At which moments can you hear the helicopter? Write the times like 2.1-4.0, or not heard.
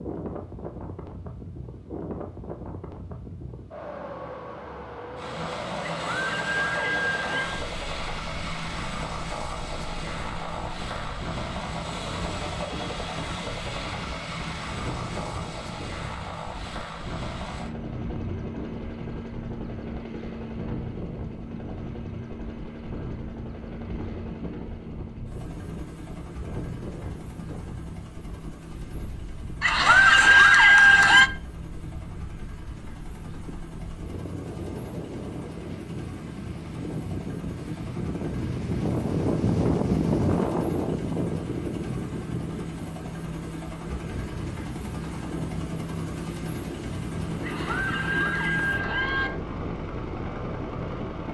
5.2-51.2.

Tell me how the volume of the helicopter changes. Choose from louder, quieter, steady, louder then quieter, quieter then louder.
quieter then louder.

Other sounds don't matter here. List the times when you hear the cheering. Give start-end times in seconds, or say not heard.
5.8-7.6, 29.6-31.3, 47.4-49.3.